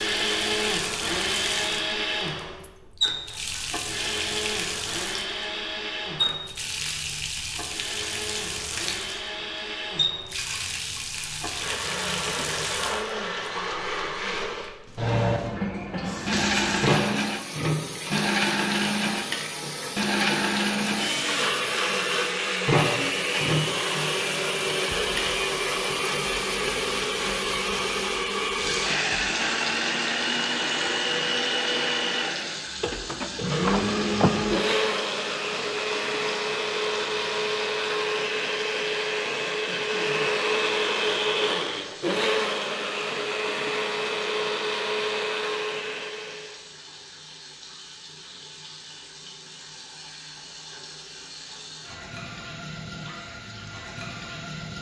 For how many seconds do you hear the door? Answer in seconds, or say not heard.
2 s.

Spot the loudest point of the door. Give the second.
34 s.